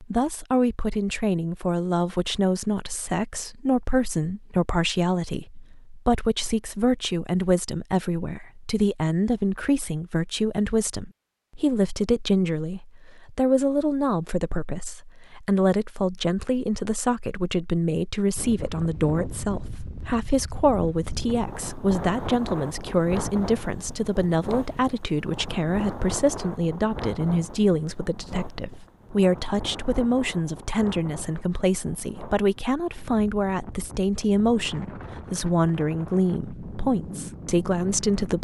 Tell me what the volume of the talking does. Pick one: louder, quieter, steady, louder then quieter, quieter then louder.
steady.